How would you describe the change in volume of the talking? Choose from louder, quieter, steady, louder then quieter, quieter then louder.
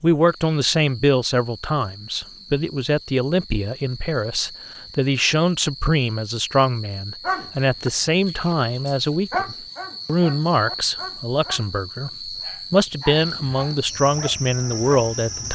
steady.